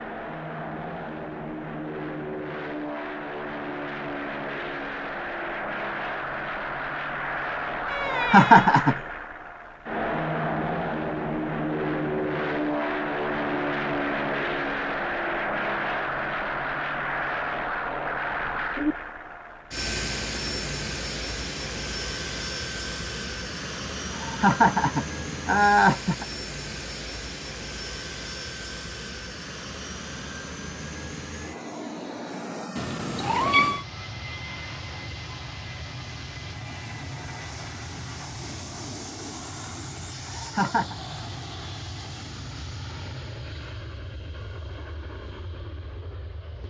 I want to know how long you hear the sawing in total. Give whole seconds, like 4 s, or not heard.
not heard.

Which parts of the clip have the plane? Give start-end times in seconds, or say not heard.
0.0-46.6.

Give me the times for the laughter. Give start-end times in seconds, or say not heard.
8.1-8.9, 24.1-26.2, 40.3-41.0.